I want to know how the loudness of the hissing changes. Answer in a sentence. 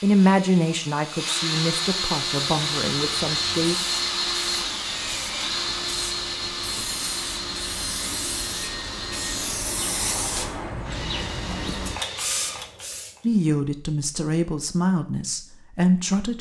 The loudness of the hissing goes up.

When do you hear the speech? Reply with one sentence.
You can hear the speech from 0.0 to 3.8 s and from 13.2 to 16.3 s.